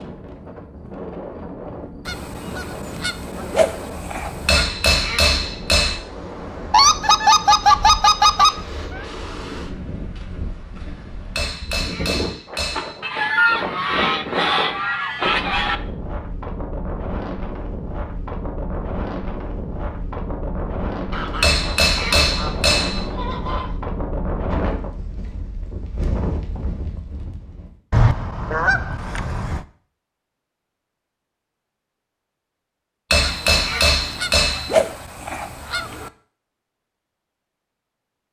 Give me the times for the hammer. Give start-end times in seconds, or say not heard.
4.5-6.0, 11.3-13.0, 21.4-23.1, 33.1-34.8.